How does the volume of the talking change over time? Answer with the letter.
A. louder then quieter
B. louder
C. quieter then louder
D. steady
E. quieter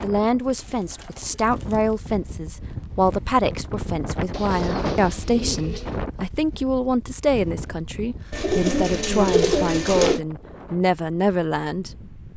D.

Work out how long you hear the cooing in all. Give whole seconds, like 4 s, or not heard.
5 s.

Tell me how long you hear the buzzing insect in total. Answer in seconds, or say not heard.
not heard.